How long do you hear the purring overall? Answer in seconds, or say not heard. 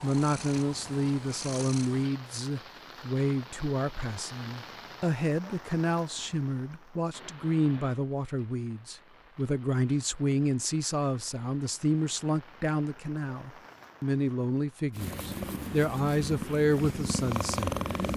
5 s.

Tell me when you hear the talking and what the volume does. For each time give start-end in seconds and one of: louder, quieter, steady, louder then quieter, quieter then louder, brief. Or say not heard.
0.0-18.1 steady.